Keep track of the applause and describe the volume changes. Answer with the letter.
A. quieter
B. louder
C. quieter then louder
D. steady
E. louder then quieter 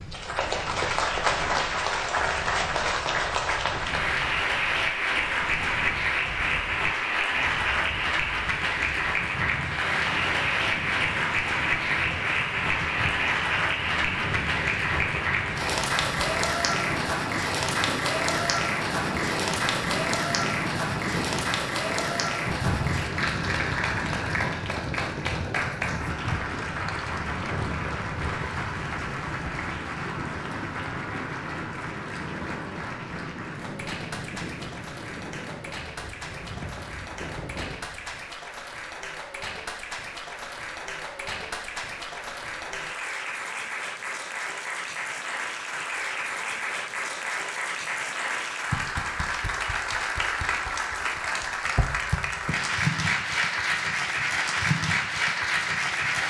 C.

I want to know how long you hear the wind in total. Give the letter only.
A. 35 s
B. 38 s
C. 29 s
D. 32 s
B.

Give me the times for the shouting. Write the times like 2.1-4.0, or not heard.
not heard.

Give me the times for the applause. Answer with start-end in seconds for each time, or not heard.
0.0-56.2.